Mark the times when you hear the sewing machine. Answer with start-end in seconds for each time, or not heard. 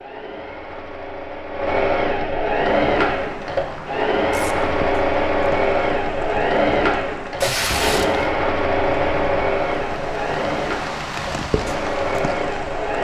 0.0-12.9.